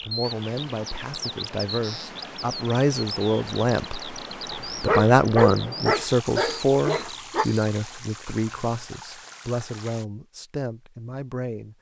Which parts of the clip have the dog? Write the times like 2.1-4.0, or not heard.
4.5-7.5.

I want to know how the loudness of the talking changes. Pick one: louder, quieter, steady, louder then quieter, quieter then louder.
louder then quieter.